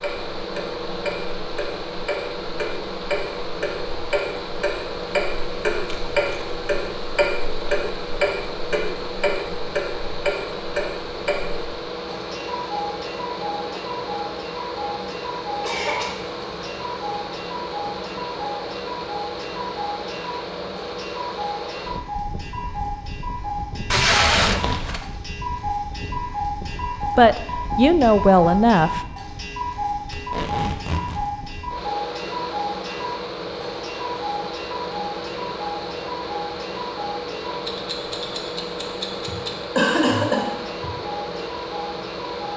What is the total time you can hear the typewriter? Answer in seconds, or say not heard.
not heard.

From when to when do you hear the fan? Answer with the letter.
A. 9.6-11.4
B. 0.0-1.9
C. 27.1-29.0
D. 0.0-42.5
D.